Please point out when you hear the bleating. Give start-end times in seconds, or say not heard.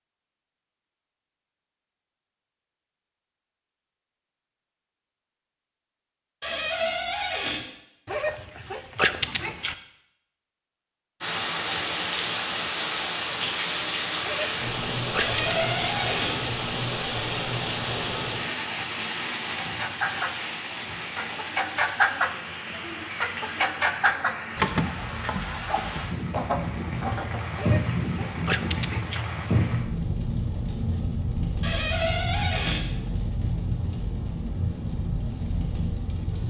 not heard.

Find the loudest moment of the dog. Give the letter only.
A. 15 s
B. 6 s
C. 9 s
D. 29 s
C.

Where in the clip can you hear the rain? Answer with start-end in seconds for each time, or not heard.
11.2-36.4.